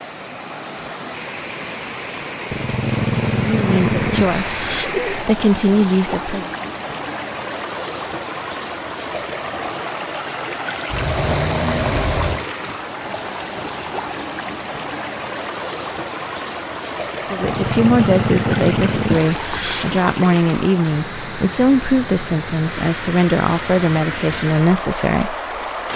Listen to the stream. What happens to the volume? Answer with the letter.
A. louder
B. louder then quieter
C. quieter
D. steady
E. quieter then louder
D.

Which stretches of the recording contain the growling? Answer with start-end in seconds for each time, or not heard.
2.5-4.9, 10.9-12.4, 17.4-20.0.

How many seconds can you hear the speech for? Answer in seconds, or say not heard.
11 s.